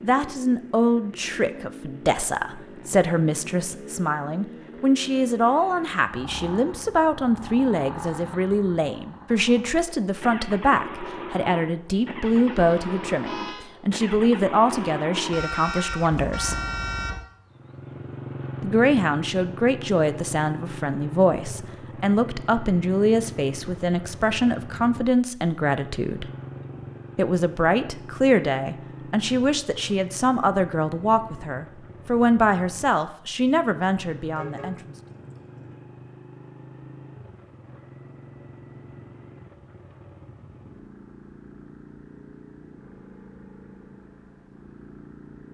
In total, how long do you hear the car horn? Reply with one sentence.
You can hear the car horn for 5 seconds altogether.